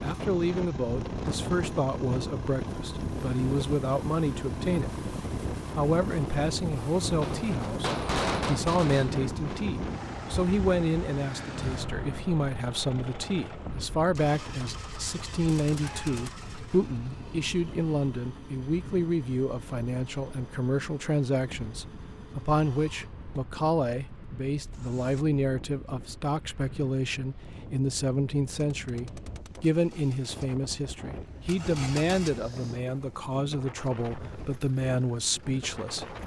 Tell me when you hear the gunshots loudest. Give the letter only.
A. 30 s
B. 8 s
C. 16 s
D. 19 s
B.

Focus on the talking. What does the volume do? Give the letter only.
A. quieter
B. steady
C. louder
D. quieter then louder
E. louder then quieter
B.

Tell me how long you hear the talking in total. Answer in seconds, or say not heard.
35 s.